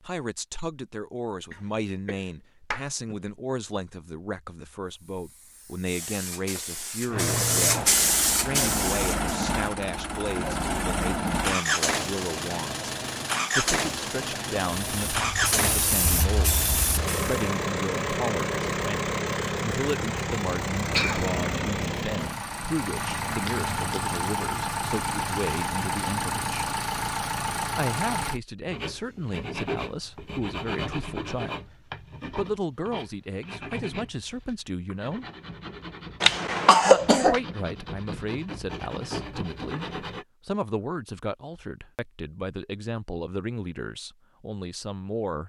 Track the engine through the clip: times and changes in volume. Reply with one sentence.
You can hear the engine from 7.0 to 28.4 s, at a steady volume.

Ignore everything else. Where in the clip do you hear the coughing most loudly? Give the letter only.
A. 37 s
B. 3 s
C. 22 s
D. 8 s
A.